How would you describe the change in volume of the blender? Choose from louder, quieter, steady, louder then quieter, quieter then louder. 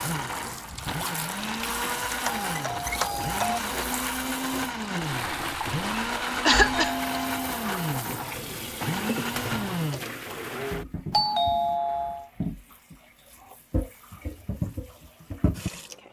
steady.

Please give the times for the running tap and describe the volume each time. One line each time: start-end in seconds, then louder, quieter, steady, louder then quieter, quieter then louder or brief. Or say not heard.
0.0-16.0 steady.